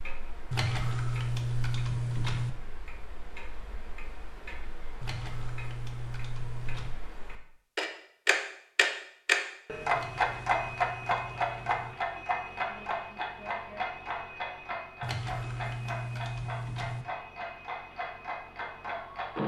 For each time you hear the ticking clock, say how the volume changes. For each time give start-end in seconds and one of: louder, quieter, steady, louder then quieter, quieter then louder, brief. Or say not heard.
0.0-19.4 louder then quieter.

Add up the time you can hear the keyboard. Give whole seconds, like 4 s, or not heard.
8 s.